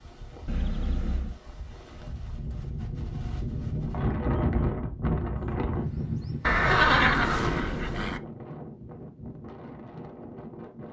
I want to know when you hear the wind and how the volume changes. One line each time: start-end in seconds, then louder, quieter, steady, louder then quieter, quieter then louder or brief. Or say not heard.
0.0-10.8 louder then quieter.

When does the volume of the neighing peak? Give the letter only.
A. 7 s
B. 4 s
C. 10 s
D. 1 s
A.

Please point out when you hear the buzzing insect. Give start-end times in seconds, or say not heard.
not heard.